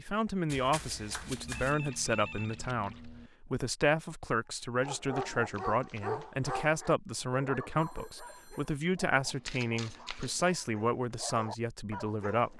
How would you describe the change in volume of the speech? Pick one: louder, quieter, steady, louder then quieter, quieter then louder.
steady.